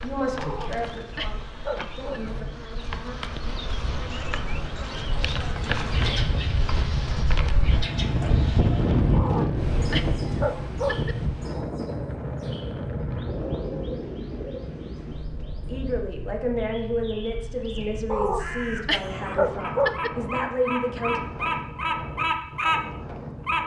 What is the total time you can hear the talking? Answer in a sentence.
The talking can be heard for 8 seconds in total.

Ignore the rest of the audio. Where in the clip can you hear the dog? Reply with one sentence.
You can hear the dog from 0.3 to 2.2 s, from 9.1 to 11.2 s and from 18.1 to 20.1 s.